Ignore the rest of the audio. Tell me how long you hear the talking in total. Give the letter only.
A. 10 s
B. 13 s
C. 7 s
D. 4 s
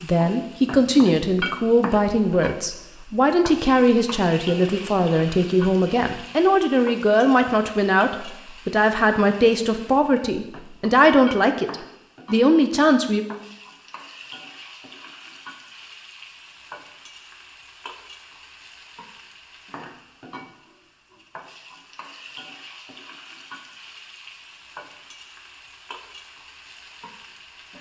B.